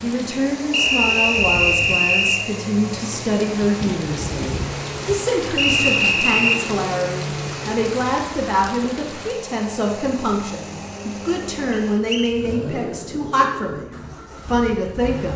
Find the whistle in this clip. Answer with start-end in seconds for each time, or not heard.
0.7-2.5, 5.5-6.6, 11.7-12.3.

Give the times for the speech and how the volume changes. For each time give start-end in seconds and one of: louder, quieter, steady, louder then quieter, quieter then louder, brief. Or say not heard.
0.0-15.3 steady.